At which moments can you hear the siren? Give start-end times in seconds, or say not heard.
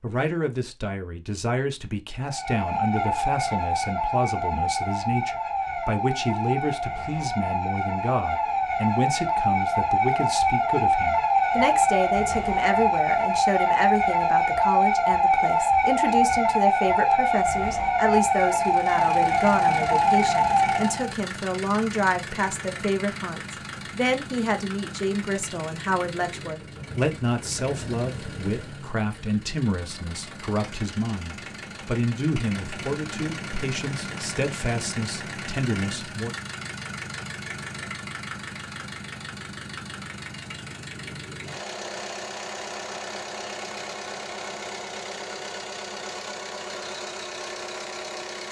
2.2-21.1.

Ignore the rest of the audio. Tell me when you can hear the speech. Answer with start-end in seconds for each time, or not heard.
0.0-36.4.